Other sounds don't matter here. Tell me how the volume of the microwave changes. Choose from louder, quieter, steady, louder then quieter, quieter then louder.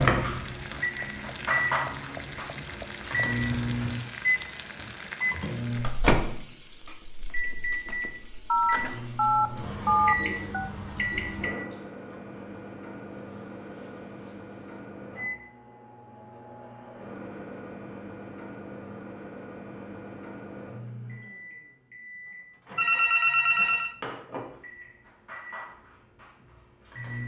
quieter.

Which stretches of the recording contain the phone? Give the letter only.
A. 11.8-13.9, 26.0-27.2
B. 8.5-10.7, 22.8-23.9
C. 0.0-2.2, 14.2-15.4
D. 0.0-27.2
B.